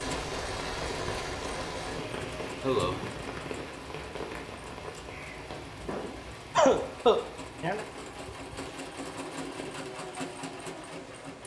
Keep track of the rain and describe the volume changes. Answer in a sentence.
The volume of the rain goes down.